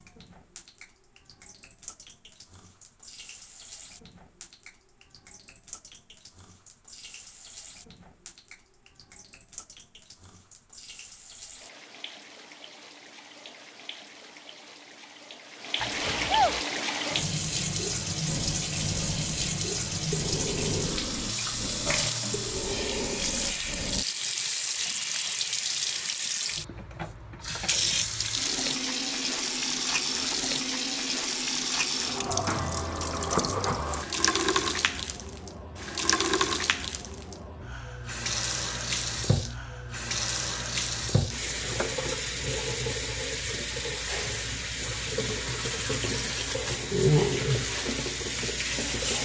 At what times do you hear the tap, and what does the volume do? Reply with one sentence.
The tap can be heard from 0.0 to 49.2 s, getting louder.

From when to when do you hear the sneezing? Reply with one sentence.
The sneezing can be heard from 15.8 to 16.6 s.